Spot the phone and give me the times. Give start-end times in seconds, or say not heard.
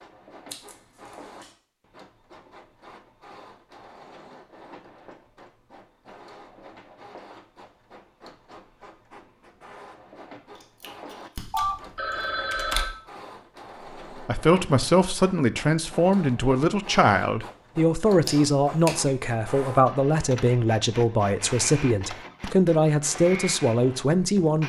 11.5-12.9.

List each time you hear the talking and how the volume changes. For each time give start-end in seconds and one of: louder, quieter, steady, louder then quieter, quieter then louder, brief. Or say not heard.
14.2-24.6 steady.